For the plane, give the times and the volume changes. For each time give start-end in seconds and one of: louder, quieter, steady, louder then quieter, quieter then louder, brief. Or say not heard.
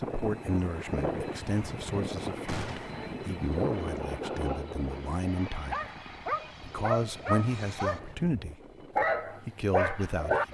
0.0-10.4 quieter.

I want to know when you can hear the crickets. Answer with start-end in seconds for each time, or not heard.
not heard.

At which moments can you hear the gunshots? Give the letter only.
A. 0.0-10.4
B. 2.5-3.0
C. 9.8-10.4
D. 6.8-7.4
B.